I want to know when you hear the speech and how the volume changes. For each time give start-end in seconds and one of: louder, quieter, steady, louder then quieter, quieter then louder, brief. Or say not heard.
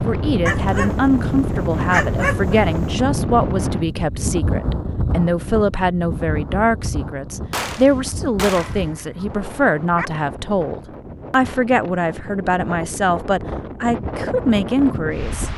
0.1-15.5 steady.